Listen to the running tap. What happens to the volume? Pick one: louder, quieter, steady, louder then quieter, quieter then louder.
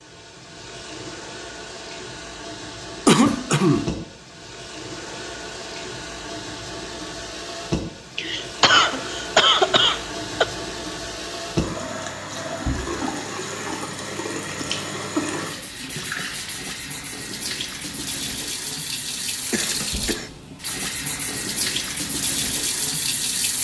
louder.